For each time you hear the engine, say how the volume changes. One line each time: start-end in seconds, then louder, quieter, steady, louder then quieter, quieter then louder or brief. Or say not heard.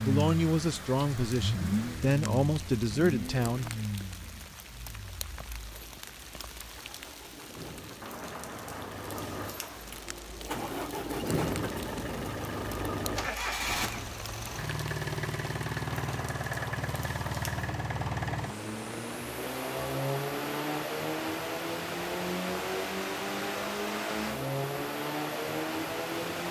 0.0-26.4 quieter then louder.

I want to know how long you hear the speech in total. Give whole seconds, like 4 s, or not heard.
4 s.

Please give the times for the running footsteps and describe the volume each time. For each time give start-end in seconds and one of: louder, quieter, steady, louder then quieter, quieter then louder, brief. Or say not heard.
not heard.